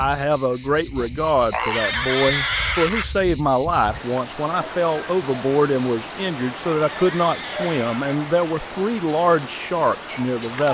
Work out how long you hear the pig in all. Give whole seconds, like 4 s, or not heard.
3 s.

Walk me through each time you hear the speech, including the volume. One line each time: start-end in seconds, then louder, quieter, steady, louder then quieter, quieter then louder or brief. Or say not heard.
0.0-10.6 steady.